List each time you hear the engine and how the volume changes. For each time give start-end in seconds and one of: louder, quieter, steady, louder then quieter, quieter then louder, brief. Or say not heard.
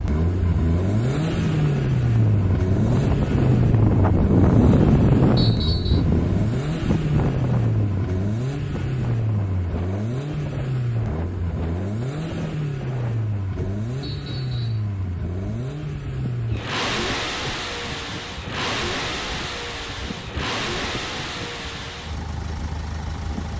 0.0-23.5 quieter.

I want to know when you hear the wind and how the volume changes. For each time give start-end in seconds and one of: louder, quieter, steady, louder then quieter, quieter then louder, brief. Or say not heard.
0.0-23.5 quieter.